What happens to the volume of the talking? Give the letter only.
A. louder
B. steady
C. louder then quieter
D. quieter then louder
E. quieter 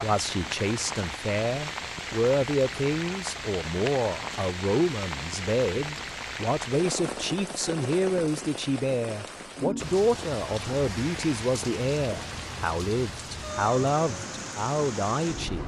B.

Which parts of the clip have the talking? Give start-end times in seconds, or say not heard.
0.0-15.6.